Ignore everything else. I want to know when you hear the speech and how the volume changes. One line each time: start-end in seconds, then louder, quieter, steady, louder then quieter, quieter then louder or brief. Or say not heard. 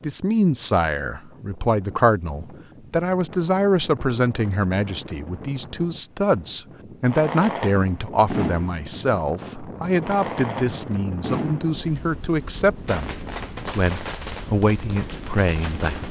0.0-16.0 steady.